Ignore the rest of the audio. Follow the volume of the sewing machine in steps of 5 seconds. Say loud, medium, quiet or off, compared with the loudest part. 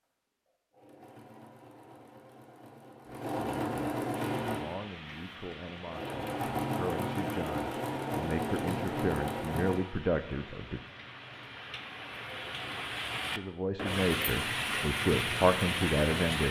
loud, loud, off, off.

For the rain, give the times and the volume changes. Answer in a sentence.
You can hear the rain from 4.1 to 16.4 s, getting louder.